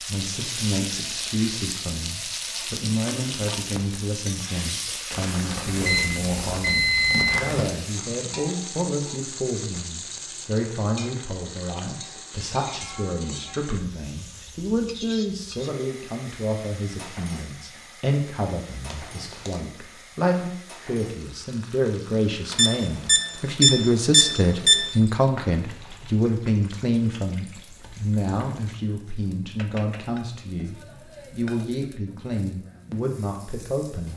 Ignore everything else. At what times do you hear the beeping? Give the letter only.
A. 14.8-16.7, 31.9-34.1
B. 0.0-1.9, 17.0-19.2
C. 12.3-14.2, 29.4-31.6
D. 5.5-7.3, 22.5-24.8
D.